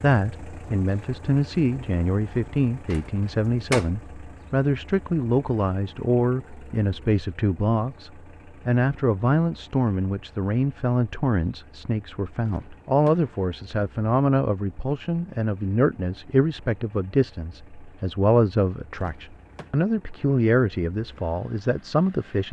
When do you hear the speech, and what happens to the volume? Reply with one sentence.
You can hear the speech from 0.0 to 22.4 s, at a steady volume.